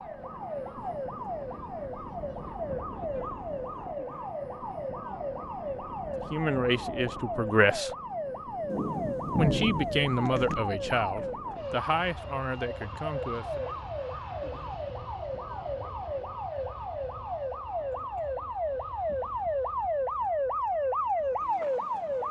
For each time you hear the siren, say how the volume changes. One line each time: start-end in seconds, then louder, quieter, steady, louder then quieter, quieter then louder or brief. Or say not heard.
0.0-22.2 louder.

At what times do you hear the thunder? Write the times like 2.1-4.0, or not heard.
8.7-10.6.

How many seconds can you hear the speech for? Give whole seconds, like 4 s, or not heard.
6 s.